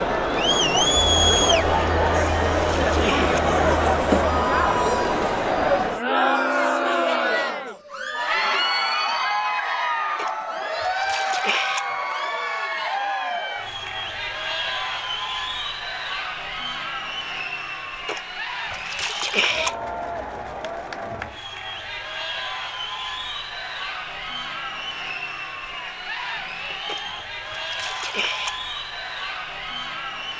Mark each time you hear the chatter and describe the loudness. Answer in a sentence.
The chatter can be heard from 0.0 to 30.3 s, getting quieter.